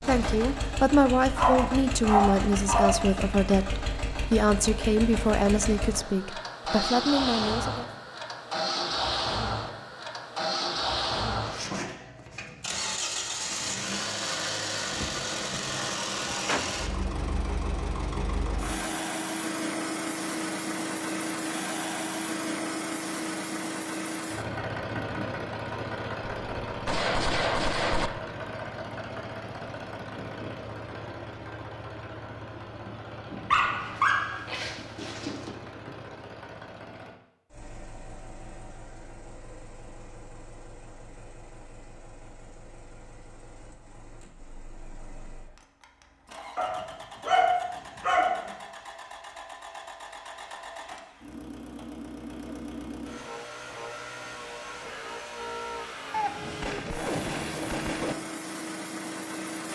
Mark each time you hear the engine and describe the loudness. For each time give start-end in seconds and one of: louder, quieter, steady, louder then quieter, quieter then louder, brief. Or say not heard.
0.0-59.7 quieter then louder.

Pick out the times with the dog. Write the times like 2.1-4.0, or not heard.
1.4-3.0, 33.5-35.5, 46.5-48.5.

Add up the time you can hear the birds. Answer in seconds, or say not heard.
not heard.